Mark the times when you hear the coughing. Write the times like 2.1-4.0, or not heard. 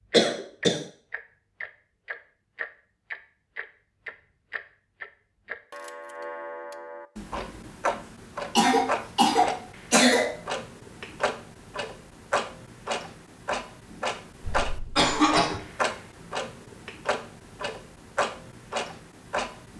0.1-0.8, 8.6-10.3, 14.4-15.6.